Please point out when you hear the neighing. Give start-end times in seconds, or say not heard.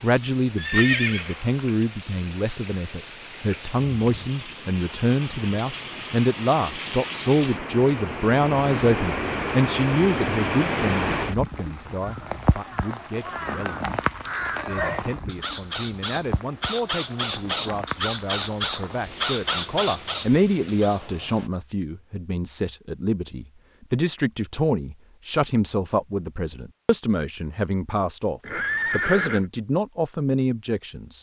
0.6-1.6, 14.5-15.0, 28.4-29.4.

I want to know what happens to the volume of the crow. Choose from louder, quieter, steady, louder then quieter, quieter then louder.
louder.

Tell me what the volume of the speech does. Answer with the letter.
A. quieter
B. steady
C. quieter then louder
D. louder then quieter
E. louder
C.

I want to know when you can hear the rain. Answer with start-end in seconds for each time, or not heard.
0.0-21.5.